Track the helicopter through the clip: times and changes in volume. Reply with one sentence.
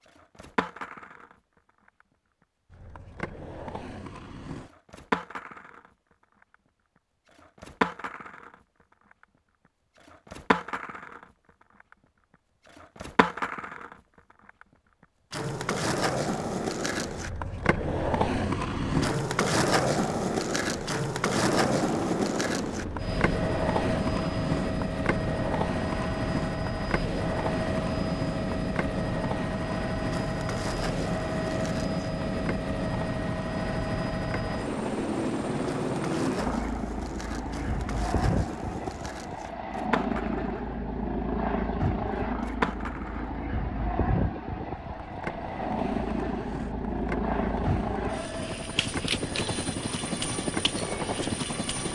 The helicopter can be heard from 21.3 to 51.8 s, at a steady volume.